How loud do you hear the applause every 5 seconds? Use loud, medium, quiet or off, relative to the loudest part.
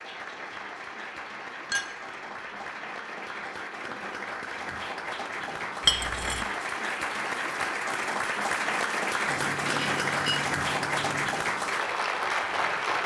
medium, loud, loud.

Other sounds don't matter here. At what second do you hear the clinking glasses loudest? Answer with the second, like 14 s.
6 s.